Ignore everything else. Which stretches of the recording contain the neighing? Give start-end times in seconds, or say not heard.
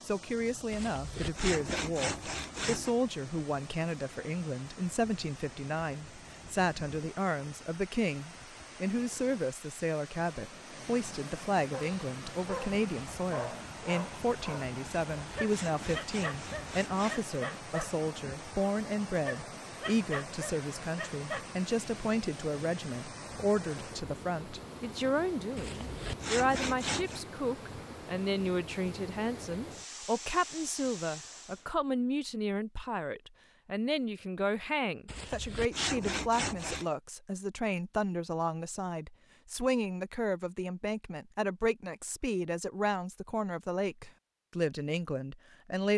not heard.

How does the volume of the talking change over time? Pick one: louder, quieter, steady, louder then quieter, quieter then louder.
steady.